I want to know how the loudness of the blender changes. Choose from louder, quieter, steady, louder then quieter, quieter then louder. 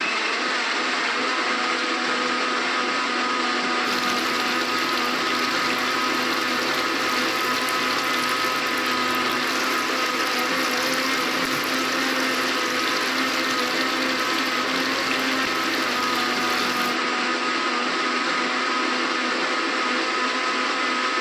steady.